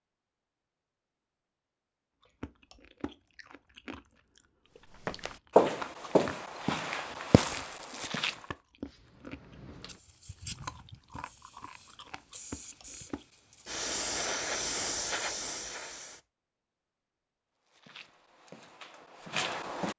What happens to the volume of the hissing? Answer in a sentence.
The loudness of the hissing goes down, then up.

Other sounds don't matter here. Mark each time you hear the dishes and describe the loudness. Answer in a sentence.
You can't hear the dishes here.